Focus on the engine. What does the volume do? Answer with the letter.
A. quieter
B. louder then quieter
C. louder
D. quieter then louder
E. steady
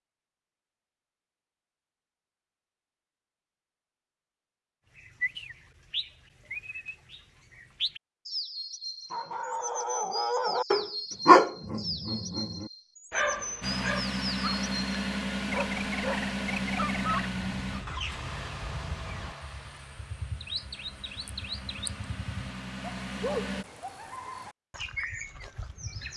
D.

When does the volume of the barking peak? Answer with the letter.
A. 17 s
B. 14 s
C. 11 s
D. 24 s
C.